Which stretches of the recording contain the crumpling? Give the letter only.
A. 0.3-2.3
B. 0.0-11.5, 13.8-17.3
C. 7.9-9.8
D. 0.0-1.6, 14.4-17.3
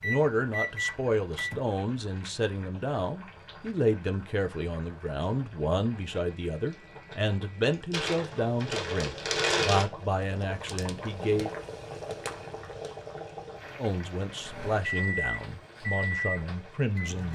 C.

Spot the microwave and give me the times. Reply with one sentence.
You can hear the microwave from 0.0 to 1.6 s and from 14.4 to 17.3 s.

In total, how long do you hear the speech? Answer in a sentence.
The speech can be heard for 15 seconds in total.